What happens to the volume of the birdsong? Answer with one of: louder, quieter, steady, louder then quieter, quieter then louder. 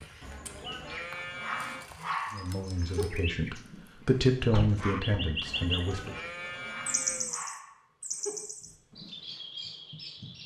louder then quieter.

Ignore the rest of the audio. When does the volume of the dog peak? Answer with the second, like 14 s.
2 s.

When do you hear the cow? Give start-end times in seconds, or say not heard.
0.2-1.9, 5.5-7.3.